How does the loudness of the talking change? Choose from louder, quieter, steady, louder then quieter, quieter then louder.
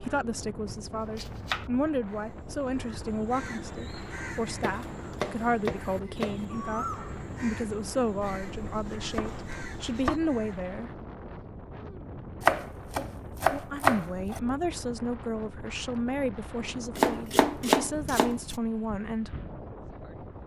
steady.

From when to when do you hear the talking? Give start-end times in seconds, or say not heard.
0.0-10.9, 13.5-19.4.